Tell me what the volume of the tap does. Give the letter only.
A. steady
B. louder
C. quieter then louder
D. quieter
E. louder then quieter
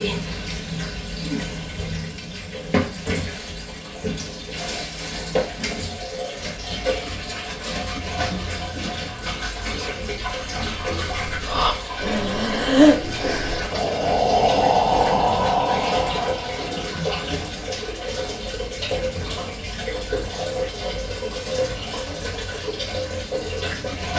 A.